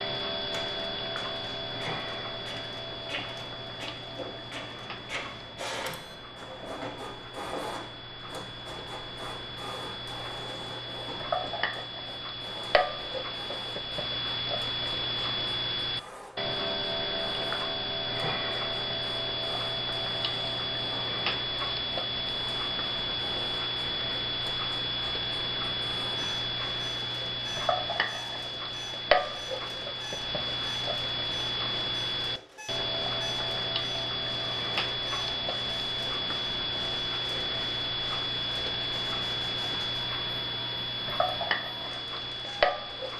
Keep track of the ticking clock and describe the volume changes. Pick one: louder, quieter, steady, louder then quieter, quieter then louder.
louder.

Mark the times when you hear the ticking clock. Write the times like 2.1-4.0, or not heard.
0.0-43.1.